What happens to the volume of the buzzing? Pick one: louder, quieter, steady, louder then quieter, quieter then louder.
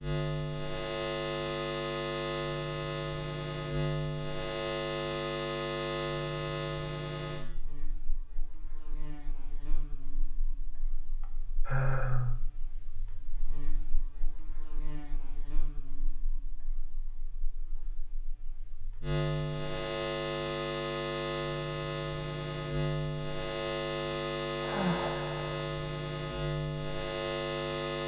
quieter then louder.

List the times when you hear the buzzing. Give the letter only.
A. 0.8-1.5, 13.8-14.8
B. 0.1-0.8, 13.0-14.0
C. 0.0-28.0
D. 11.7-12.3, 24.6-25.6
C.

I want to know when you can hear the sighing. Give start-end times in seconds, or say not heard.
11.7-12.3, 24.6-25.6.